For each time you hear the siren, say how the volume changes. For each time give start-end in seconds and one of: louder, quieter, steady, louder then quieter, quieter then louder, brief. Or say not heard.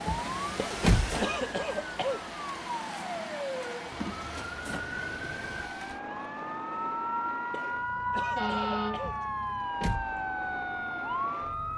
0.0-11.7 louder.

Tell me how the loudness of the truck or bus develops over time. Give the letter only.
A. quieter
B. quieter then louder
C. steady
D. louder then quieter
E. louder
A.